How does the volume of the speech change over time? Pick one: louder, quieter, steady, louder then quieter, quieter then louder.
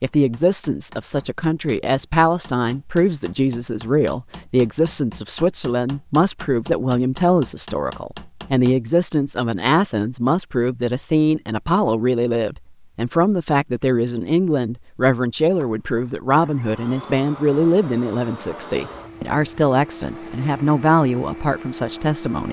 steady.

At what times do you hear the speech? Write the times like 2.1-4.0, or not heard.
0.0-22.4.